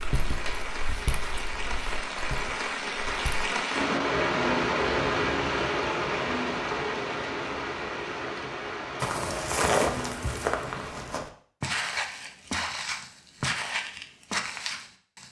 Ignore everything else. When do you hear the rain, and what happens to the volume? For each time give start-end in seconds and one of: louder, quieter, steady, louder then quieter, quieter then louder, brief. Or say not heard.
0.0-11.3 louder then quieter.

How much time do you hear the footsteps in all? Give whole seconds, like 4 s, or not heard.
10 s.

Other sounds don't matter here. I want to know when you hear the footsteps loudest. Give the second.
10 s.